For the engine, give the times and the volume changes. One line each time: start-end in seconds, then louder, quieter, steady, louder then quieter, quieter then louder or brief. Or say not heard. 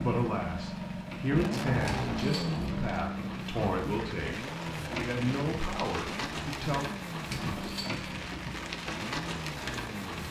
0.0-10.2 quieter.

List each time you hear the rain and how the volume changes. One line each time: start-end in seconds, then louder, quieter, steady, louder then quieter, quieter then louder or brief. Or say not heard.
0.0-10.2 louder.